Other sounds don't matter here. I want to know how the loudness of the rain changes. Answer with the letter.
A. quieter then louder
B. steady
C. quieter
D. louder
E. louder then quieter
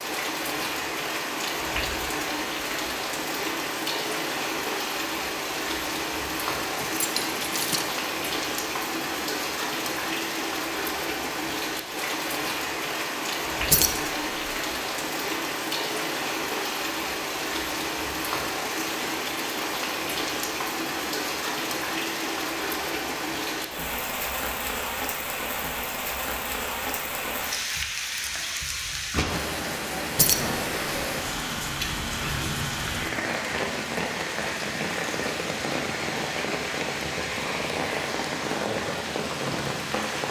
B.